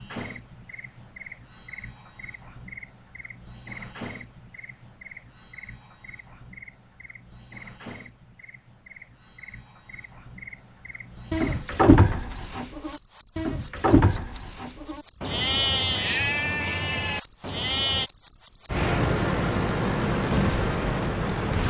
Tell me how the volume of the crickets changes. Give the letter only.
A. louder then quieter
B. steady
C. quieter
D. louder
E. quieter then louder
D.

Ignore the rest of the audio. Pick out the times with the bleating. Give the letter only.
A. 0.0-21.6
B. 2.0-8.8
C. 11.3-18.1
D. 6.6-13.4
C.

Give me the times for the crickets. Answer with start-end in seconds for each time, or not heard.
0.0-21.6.